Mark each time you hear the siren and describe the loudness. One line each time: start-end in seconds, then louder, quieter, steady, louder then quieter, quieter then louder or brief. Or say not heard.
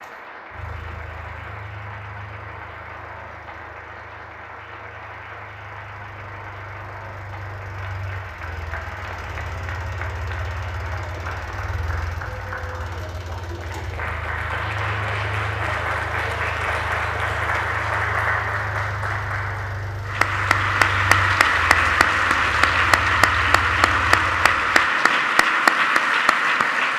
not heard.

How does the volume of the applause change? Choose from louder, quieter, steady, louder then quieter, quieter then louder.
louder.